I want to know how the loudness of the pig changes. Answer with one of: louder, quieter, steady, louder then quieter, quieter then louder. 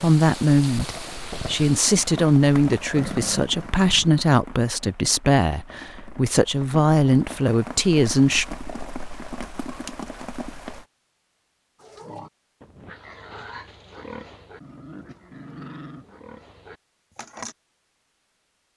quieter then louder.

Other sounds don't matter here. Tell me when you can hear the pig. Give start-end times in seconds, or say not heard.
11.8-17.6.